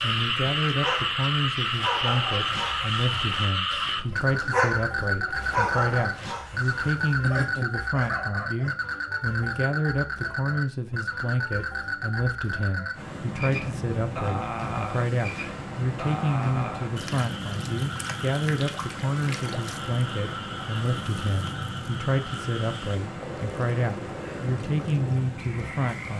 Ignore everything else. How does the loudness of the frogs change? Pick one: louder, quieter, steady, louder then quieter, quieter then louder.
quieter.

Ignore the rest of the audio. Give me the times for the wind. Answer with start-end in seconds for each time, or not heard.
12.9-26.1.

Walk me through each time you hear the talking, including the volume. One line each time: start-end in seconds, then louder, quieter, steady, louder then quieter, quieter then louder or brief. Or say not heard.
0.0-26.1 steady.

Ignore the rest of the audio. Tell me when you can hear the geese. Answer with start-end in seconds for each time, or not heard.
not heard.